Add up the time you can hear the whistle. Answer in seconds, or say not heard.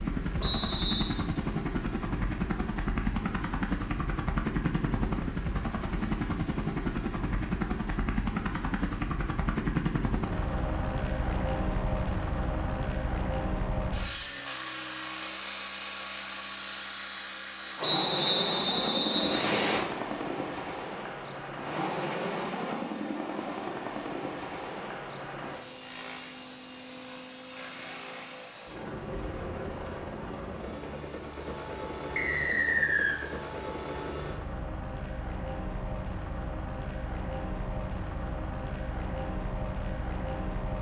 4 s.